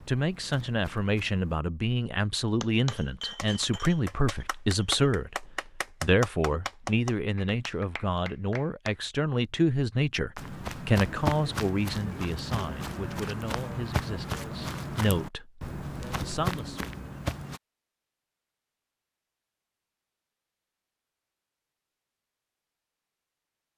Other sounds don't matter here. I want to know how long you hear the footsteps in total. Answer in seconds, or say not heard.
9 s.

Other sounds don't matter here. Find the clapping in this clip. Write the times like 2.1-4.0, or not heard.
2.6-9.0.